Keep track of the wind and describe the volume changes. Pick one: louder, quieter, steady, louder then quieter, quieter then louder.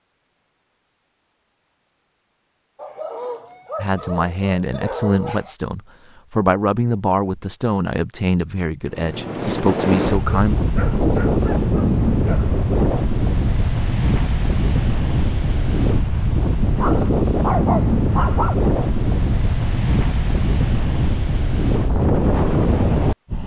steady.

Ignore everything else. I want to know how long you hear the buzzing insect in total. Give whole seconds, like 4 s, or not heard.
not heard.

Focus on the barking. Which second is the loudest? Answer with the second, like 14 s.
18 s.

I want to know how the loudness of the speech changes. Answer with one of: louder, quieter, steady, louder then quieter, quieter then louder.
steady.